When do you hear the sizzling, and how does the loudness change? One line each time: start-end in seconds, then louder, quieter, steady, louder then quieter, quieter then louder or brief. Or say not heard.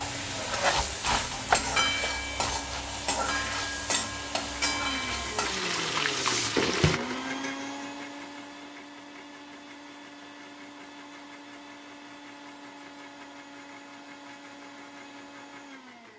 0.0-7.0 steady.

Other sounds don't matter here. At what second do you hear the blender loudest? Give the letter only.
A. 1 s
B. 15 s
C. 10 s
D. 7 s
D.